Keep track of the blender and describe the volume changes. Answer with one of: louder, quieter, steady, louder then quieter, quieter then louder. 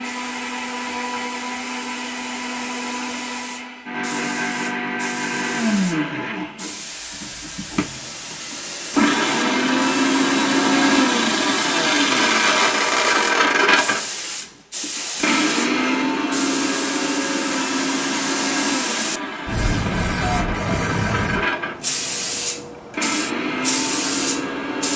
louder then quieter.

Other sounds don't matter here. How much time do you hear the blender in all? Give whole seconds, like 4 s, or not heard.
25 s.